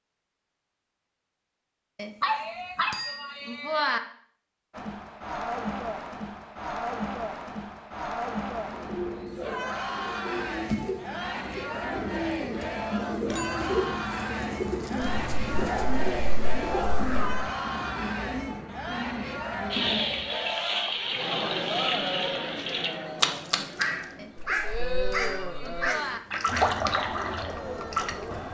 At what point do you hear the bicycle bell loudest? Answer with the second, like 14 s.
4 s.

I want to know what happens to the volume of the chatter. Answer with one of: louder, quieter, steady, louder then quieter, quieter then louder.
steady.